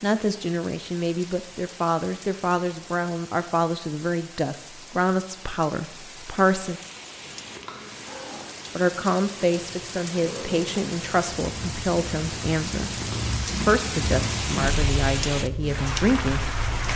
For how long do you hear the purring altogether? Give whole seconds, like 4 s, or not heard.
10 s.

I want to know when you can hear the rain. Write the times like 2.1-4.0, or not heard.
0.0-16.9.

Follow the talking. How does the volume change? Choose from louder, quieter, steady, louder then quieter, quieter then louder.
steady.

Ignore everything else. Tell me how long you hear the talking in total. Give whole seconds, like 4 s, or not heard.
14 s.